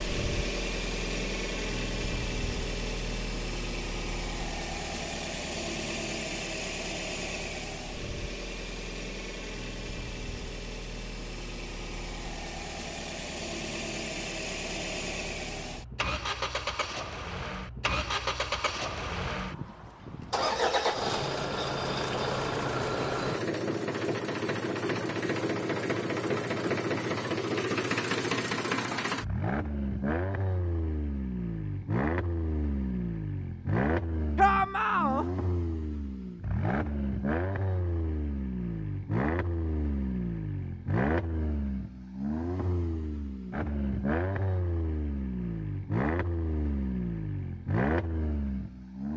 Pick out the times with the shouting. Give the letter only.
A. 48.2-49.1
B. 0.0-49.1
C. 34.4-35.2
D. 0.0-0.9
C.